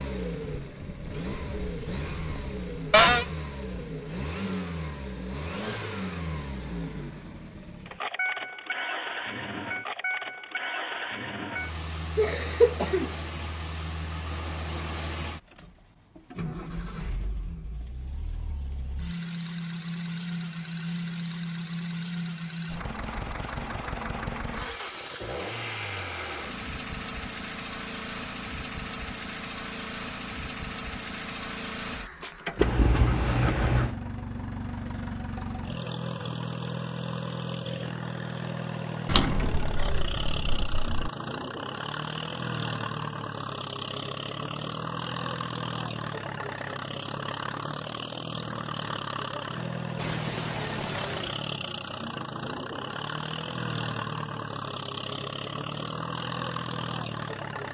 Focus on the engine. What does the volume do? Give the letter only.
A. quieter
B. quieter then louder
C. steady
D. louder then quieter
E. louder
C.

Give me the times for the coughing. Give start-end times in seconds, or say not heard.
12.2-13.1, 32.5-34.0, 50.0-51.4.